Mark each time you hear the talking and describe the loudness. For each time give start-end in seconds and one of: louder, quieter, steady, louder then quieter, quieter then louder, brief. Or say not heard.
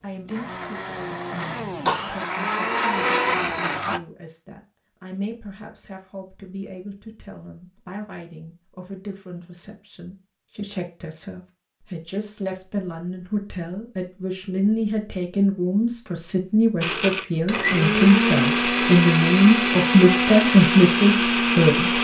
0.0-21.9 louder.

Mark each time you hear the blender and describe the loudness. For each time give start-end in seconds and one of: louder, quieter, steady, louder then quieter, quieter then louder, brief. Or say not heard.
0.0-4.0 louder
16.8-21.9 steady.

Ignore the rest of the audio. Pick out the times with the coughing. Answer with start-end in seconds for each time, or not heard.
1.4-2.2.